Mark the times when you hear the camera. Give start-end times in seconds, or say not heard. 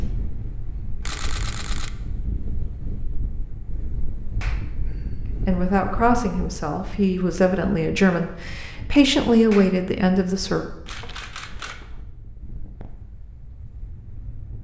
1.0-1.9, 10.8-12.0.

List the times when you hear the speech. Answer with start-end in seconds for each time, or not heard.
5.5-10.7.